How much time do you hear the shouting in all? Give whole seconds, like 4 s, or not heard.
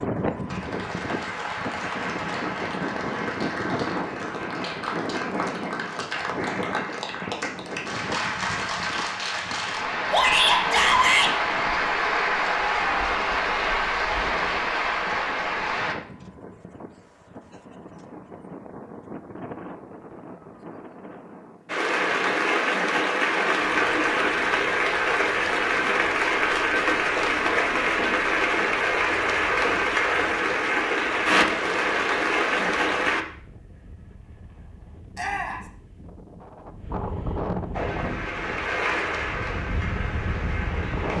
2 s.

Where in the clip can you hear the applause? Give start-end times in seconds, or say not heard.
0.0-15.9, 21.6-33.2, 37.7-41.1.